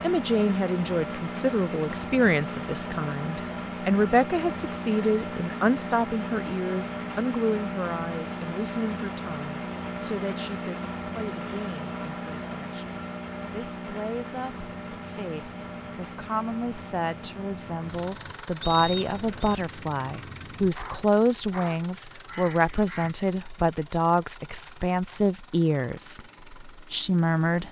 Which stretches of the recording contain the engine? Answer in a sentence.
The engine can be heard from 0.0 to 27.6 s.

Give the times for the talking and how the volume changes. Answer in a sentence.
You can hear the talking from 0.0 to 27.6 s, getting quieter then louder.